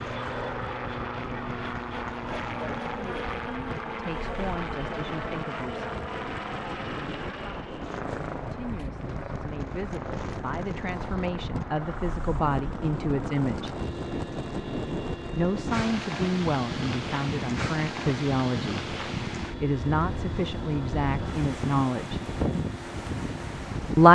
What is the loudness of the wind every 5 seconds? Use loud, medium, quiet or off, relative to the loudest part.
medium, medium, loud, loud, loud.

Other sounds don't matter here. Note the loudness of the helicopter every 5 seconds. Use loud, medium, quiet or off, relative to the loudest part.
loud, loud, medium, medium, medium.